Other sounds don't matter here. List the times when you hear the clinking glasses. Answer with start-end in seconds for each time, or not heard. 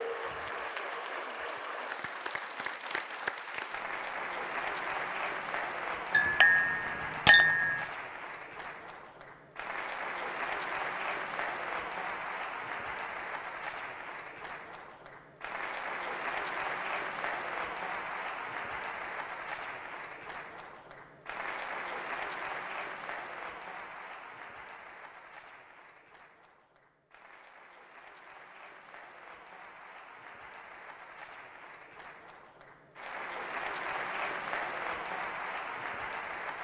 6.1-7.8.